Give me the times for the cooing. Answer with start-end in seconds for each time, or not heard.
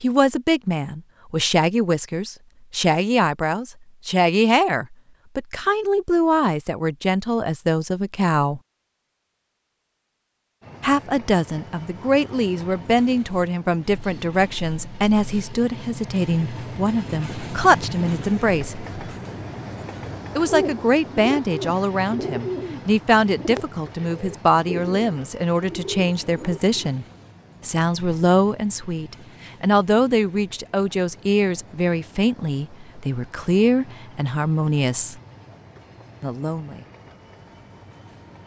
20.4-26.9.